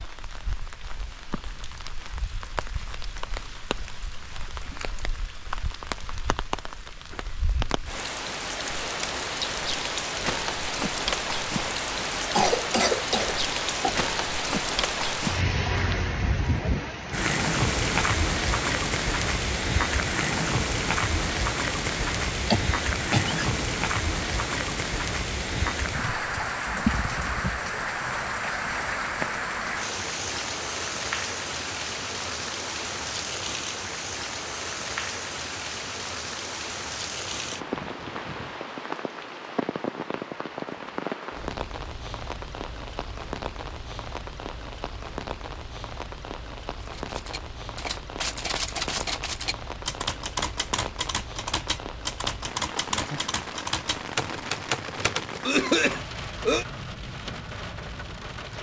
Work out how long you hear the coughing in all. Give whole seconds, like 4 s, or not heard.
4 s.